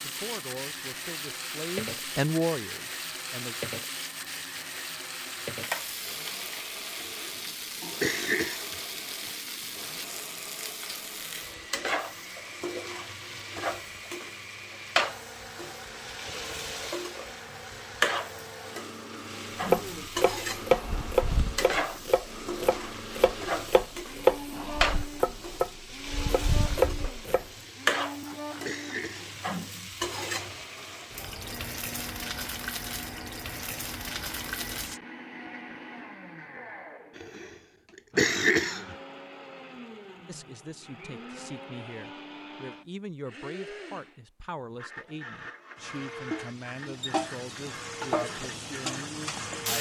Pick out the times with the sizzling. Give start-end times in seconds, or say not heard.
0.0-35.0, 45.8-49.7.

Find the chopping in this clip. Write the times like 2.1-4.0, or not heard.
19.6-27.4.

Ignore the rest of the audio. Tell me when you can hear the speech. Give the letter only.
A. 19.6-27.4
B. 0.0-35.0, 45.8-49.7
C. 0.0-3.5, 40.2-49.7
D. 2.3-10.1
C.